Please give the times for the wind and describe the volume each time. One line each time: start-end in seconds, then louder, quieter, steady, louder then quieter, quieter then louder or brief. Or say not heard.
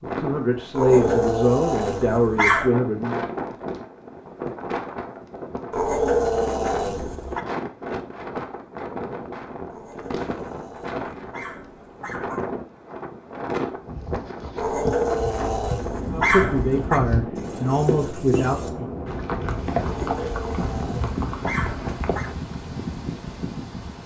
0.0-24.0 steady.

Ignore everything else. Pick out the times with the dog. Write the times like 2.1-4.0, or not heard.
0.8-2.7, 5.7-7.4, 9.7-12.5, 14.6-17.0, 19.8-22.3.